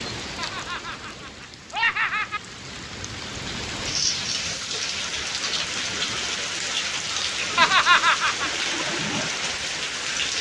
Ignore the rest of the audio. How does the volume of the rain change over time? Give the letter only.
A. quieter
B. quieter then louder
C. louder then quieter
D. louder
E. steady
D.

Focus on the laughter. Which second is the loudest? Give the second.
8 s.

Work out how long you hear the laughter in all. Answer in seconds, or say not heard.
3 s.